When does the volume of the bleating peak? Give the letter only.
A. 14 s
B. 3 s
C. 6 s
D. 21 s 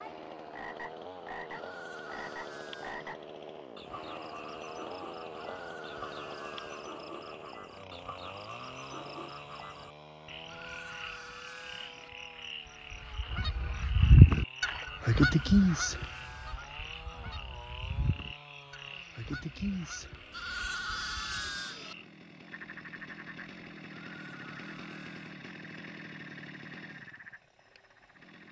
D.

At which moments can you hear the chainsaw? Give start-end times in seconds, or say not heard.
0.0-28.4.